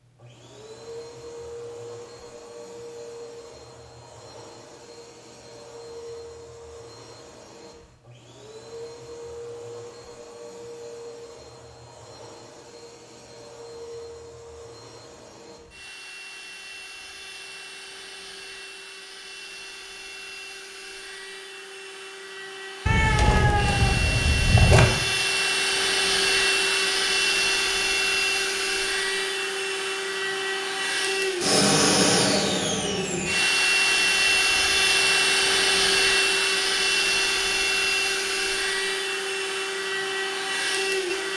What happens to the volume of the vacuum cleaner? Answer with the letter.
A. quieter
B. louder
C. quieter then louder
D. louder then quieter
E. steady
B.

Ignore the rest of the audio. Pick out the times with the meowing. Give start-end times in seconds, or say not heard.
22.9-24.9.